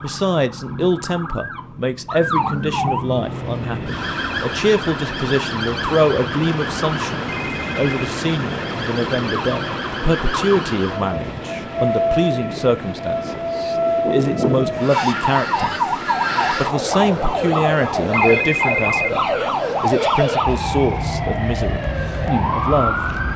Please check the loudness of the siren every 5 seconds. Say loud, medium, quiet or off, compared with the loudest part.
medium, medium, loud, loud, loud.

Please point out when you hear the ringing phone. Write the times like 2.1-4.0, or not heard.
7.2-8.1, 18.1-19.1.